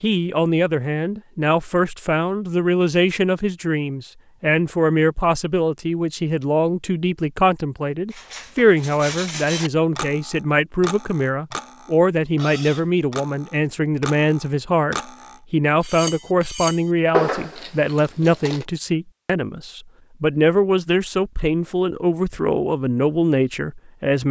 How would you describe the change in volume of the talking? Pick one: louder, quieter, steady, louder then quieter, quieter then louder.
steady.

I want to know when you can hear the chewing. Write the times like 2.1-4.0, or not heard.
17.1-18.6.